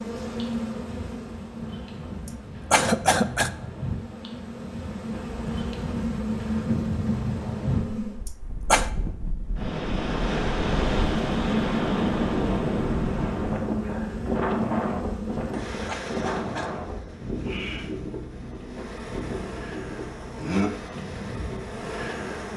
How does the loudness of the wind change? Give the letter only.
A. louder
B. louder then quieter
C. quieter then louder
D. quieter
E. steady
B.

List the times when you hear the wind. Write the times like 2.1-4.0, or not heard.
0.0-22.5.